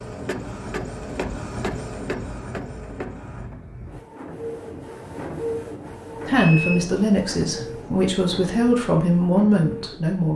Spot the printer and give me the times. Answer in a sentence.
You can hear the printer from 0.0 to 10.3 s.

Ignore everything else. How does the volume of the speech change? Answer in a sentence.
The loudness of the speech goes down, then up.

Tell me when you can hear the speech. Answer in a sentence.
The speech can be heard from 6.2 to 10.3 s.